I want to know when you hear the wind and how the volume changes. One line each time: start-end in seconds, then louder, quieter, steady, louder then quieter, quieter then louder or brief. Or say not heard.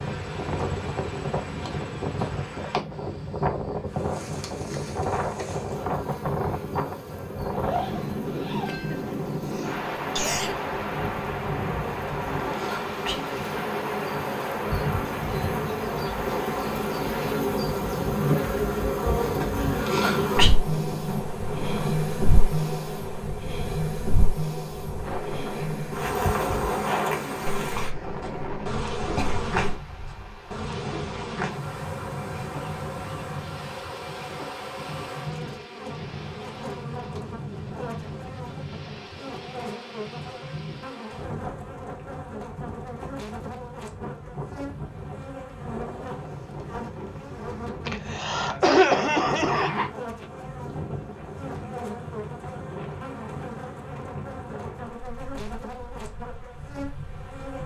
0.0-57.6 quieter.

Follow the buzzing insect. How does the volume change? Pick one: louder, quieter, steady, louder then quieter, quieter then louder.
louder then quieter.